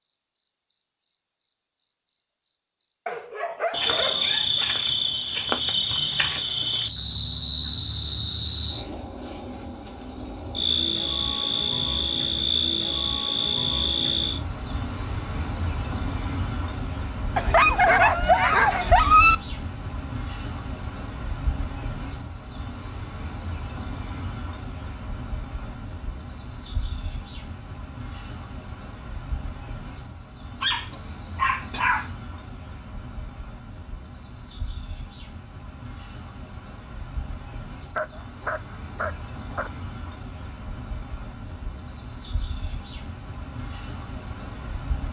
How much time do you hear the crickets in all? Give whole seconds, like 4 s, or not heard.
45 s.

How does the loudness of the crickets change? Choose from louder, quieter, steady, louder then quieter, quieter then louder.
quieter.